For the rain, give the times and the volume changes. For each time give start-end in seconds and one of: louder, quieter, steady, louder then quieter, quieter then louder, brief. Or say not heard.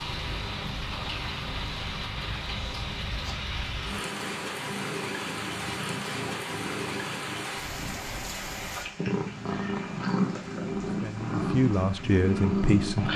0.0-13.1 quieter.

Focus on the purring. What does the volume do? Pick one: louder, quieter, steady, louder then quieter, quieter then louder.
louder.